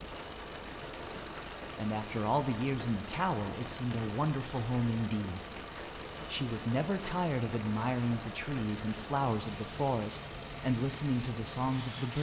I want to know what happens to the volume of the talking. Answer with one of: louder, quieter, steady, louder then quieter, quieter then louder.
steady.